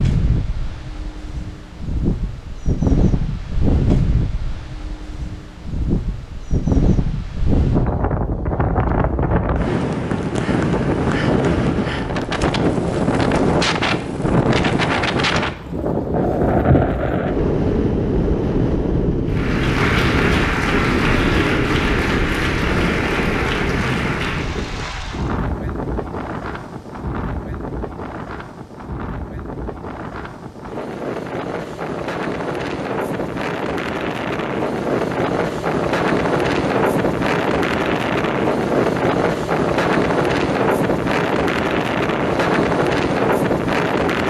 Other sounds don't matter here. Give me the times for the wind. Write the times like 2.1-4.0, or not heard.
0.0-44.2.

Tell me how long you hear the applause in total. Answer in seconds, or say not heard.
6 s.